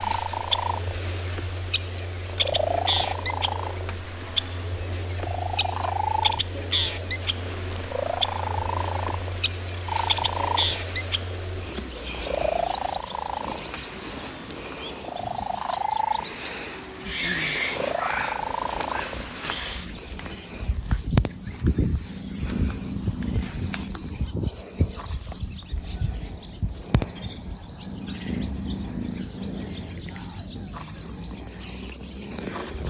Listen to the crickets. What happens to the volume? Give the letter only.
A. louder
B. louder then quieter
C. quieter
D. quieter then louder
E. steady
E.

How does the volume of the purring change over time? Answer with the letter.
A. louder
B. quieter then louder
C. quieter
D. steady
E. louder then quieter
D.